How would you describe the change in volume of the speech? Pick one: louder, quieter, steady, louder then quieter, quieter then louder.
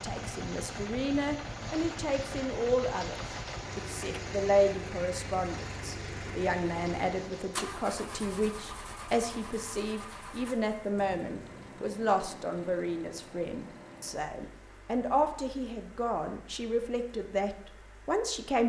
steady.